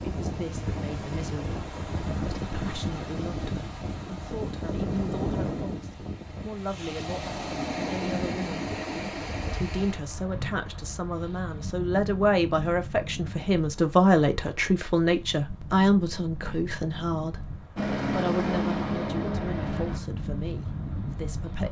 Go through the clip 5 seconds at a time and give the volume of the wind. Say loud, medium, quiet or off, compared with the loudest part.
loud, loud, medium, medium, loud.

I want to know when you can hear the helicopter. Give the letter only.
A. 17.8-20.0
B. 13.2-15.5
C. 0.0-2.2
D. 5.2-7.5
A.